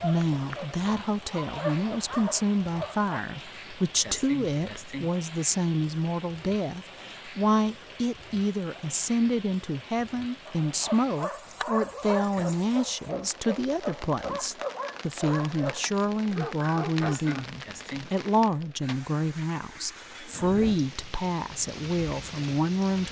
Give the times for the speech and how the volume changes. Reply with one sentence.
The speech can be heard from 0.0 to 23.0 s, at a steady volume.